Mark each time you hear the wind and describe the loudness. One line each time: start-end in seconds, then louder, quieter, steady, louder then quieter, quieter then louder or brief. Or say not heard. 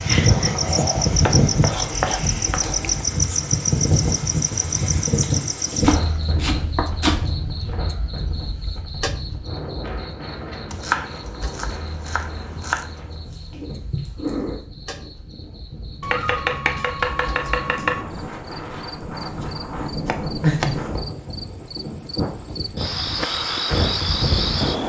0.0-24.8 quieter then louder.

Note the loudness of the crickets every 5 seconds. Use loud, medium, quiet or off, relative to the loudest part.
loud, medium, quiet, quiet, loud.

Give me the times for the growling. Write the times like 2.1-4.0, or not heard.
0.2-1.1, 12.6-14.6, 20.4-20.9.